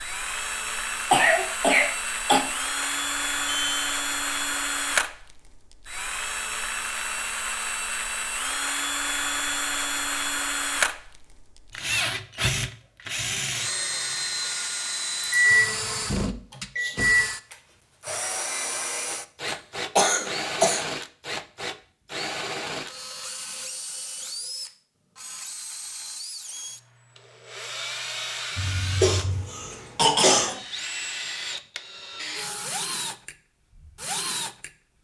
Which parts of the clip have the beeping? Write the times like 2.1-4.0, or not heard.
2.8-4.0, 15.2-15.7, 16.8-17.2, 28.6-29.5.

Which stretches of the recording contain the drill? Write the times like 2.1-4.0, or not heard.
0.0-34.7.